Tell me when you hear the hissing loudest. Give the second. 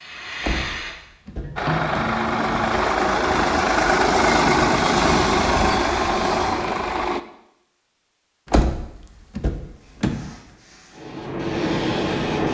12 s.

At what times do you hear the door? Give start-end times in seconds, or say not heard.
0.4-2.2, 4.5-6.6, 8.5-10.2.